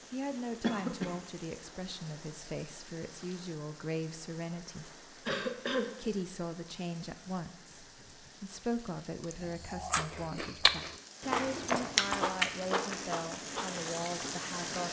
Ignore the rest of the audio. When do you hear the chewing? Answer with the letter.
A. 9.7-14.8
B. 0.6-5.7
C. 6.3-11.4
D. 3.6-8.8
A.